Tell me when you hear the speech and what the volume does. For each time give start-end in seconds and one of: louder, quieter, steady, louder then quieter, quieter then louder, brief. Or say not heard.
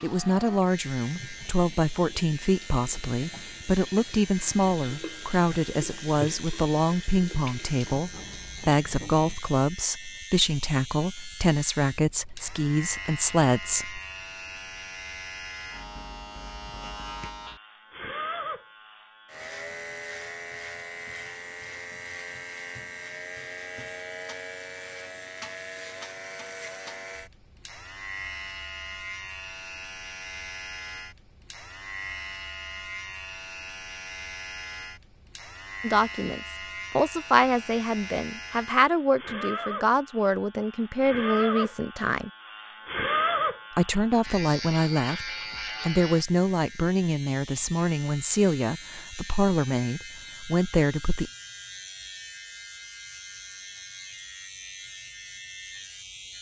0.0-14.0 steady
35.8-42.3 steady
43.8-51.3 steady.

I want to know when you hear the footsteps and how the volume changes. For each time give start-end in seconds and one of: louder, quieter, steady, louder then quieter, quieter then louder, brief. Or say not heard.
not heard.